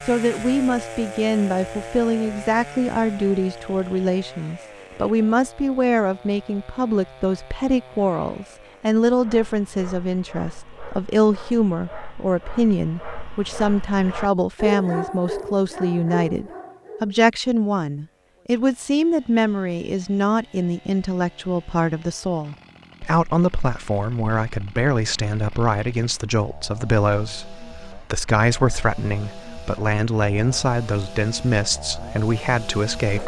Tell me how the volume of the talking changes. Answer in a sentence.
The loudness of the talking stays about the same.